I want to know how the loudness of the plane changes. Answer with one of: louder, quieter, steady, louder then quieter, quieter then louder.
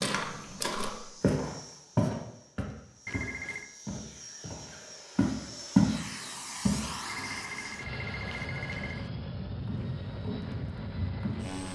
louder.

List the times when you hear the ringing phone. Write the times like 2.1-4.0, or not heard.
3.0-3.7, 7.0-9.1.